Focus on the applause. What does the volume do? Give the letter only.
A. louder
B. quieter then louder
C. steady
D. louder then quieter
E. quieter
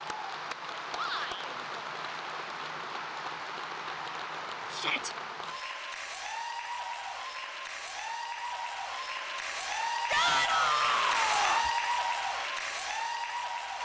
A.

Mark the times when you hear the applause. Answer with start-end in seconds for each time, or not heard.
0.0-13.8.